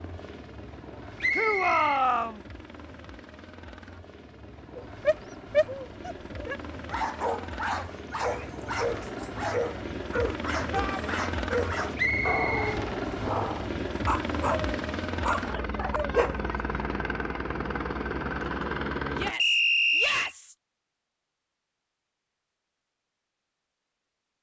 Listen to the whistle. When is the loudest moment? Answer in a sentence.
The loudest moment of the whistle is at 20 seconds.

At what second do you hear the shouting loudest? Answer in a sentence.
The volume of the shouting peaks at 2 seconds.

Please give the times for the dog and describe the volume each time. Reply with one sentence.
You can hear the dog from 4.8 to 16.4 s, at a steady volume.